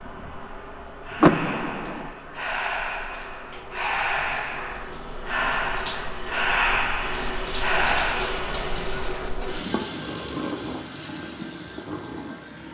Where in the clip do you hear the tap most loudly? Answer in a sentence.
The volume of the tap peaks at 8 seconds.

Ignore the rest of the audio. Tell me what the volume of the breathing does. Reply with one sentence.
The volume of the breathing goes up.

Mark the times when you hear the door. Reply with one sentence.
You can hear the door from 1.2 to 2.1 s.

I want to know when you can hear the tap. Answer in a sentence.
The tap can be heard from 0.0 to 12.6 s.